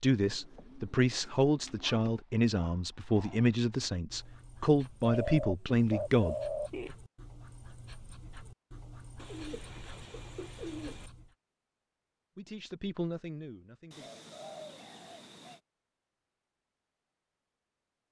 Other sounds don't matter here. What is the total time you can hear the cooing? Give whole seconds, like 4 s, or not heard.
8 s.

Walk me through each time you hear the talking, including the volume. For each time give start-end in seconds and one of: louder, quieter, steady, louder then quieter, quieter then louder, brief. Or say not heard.
0.0-6.3 steady
12.3-14.1 brief.